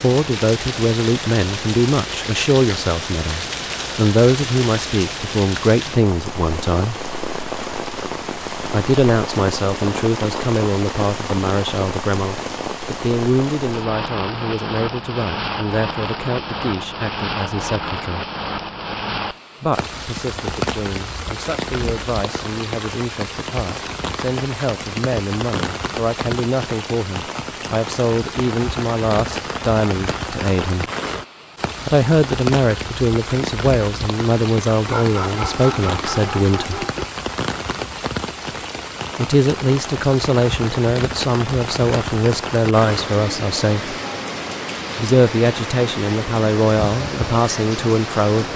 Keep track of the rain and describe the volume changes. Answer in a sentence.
The loudness of the rain stays about the same.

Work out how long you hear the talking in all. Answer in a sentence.
The talking can be heard for 41 seconds in total.